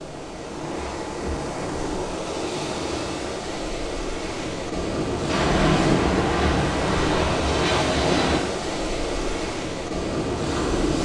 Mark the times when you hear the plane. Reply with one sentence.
The plane can be heard from 5.2 to 8.4 s.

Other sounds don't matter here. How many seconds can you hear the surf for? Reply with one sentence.
The surf can be heard for 11 seconds in total.